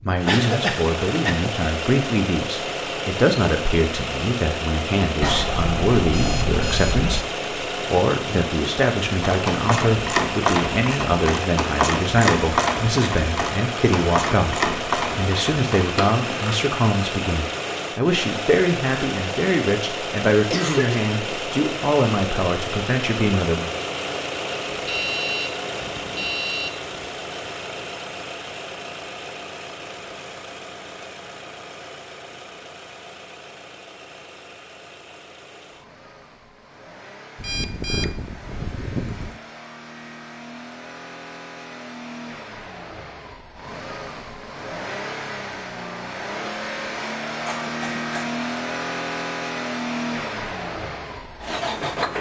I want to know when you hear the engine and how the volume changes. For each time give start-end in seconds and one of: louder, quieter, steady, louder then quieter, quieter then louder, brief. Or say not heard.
0.0-52.1 quieter then louder.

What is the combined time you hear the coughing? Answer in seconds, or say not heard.
3 s.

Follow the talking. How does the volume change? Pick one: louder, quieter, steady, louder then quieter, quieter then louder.
steady.